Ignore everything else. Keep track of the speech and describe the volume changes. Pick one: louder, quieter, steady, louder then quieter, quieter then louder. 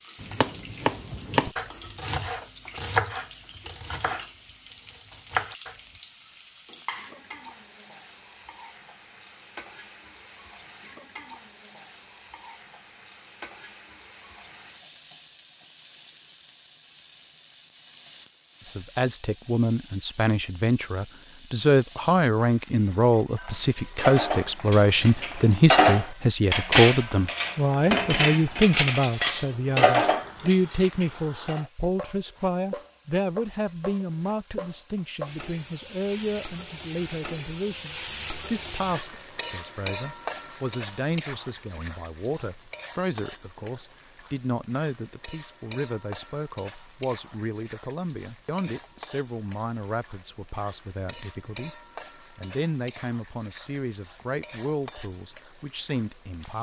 quieter.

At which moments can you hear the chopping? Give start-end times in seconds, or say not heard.
0.2-4.3, 4.9-5.8.